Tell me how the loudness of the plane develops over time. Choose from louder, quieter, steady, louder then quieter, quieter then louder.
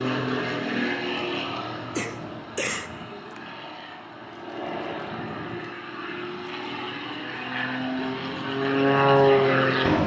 quieter then louder.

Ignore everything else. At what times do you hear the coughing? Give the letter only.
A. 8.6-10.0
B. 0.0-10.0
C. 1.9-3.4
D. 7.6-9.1
C.